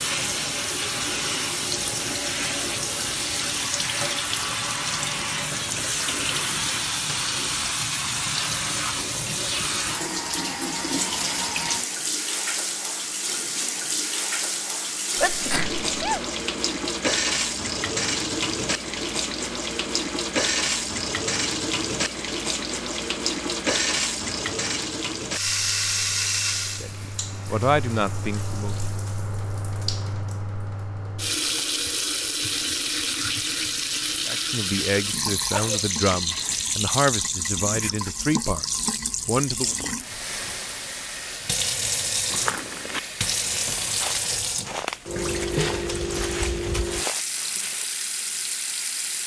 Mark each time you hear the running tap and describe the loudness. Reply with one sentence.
You can hear the running tap from 0.0 to 49.2 s, at a steady volume.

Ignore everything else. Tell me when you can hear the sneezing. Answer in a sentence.
The sneezing can be heard from 15.2 to 16.2 s and from 35.5 to 36.8 s.